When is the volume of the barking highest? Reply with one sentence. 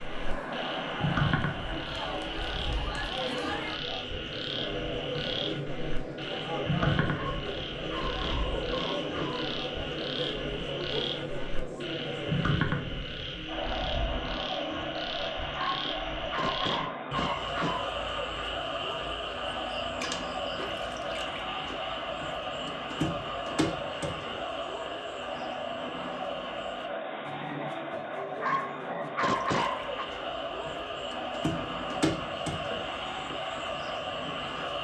The volume of the barking peaks at 29 seconds.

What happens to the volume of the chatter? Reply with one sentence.
The loudness of the chatter stays about the same.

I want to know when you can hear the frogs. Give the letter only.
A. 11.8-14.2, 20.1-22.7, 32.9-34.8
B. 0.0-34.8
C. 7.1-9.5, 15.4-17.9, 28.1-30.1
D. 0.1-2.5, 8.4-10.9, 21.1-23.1
B.